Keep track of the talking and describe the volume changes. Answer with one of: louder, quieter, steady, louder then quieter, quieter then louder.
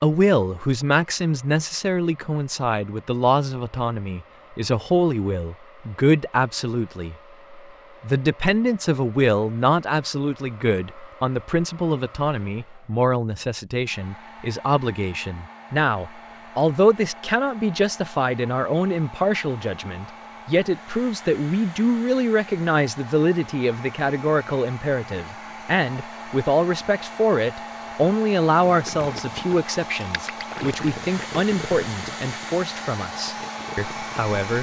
steady.